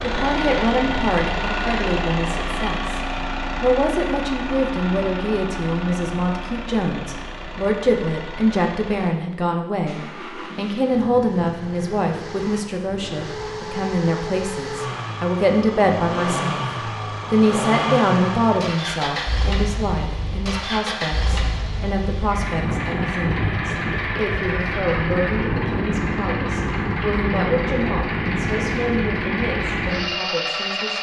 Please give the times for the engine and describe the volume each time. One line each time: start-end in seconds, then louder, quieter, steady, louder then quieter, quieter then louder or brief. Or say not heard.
0.0-30.9 quieter then louder.